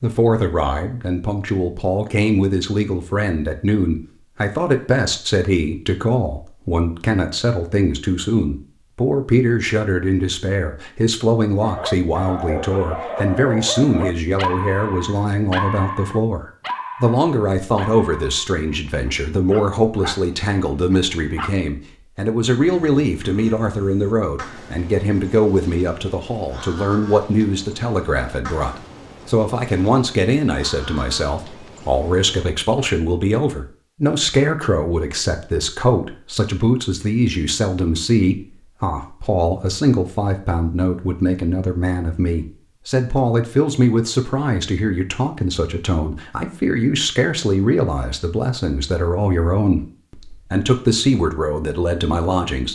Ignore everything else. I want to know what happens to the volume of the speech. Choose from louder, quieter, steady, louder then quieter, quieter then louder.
steady.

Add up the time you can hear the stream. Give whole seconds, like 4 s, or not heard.
not heard.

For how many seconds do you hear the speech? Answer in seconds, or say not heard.
53 s.